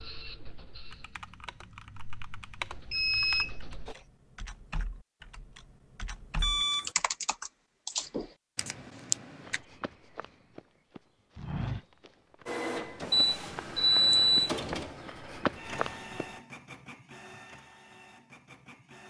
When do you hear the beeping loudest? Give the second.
14 s.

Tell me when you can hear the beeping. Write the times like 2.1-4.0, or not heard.
2.9-4.0, 6.4-6.9, 13.1-14.6.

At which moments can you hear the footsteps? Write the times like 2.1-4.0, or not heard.
9.4-16.2.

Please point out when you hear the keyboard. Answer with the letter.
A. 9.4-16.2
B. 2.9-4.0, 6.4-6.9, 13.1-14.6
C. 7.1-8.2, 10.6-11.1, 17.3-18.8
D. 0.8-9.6
D.